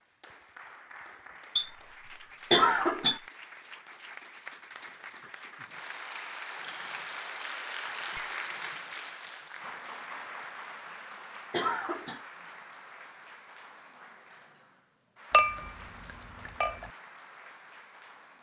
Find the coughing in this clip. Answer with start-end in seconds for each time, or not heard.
2.5-3.2, 11.5-12.2.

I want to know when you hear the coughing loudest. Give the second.
3 s.